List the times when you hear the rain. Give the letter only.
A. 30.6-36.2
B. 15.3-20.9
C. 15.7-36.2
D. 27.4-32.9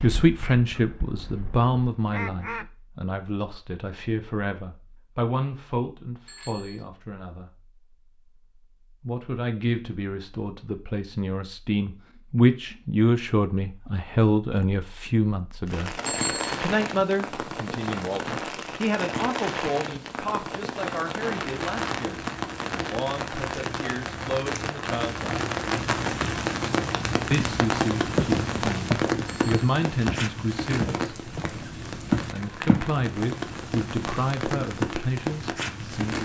C.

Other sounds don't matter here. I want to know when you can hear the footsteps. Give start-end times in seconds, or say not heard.
27.4-32.9.